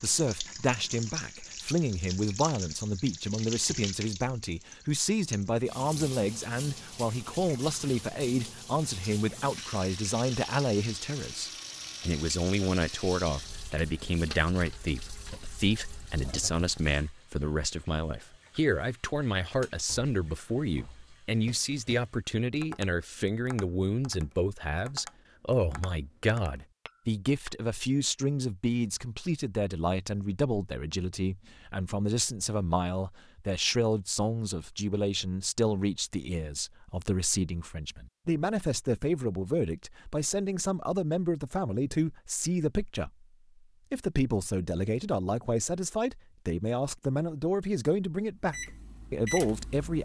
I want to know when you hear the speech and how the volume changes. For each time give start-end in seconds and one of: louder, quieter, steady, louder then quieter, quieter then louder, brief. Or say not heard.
0.0-43.2 steady
43.9-50.0 steady.